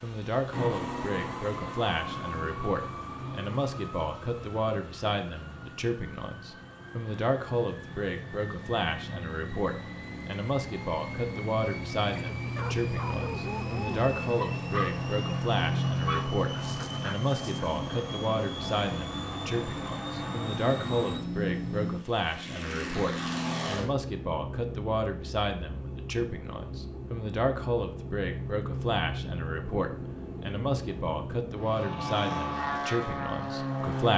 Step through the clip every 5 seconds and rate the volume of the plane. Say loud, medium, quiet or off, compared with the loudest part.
medium, medium, loud, loud, loud, medium, loud.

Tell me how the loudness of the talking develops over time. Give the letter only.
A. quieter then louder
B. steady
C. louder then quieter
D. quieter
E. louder
B.